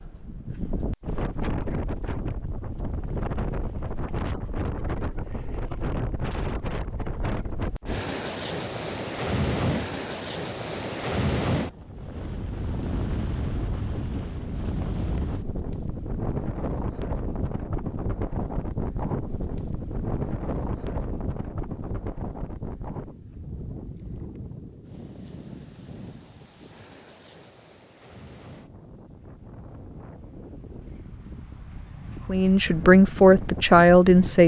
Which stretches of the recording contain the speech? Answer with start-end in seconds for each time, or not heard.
32.2-34.4.